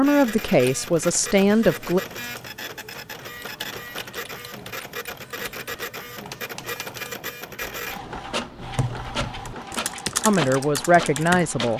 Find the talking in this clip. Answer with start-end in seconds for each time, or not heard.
0.0-2.0, 10.2-11.7.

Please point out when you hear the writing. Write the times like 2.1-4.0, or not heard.
not heard.